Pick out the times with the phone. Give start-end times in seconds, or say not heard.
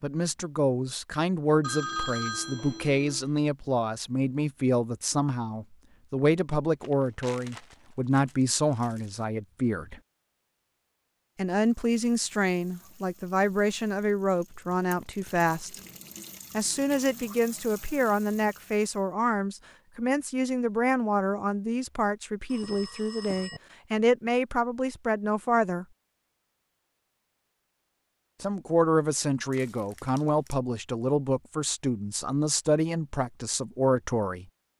1.6-3.3, 22.4-23.6.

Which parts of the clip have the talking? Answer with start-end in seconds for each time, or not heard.
0.0-10.0, 11.3-15.7, 16.5-25.9, 28.4-34.5.